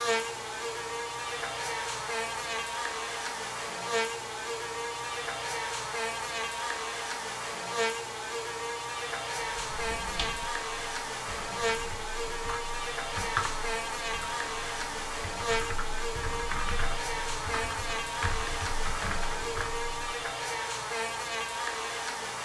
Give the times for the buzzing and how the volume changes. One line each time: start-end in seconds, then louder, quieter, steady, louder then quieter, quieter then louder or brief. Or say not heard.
0.0-22.4 steady.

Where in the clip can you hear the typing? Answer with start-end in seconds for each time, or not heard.
9.6-20.2.